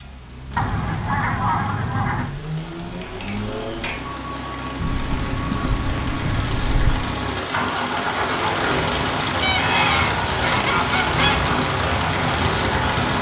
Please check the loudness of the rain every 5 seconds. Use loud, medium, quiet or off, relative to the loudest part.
quiet, loud, loud.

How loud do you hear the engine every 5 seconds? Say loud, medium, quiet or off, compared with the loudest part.
medium, loud, loud.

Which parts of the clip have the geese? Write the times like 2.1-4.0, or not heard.
0.6-2.3, 4.8-7.0, 9.4-11.4.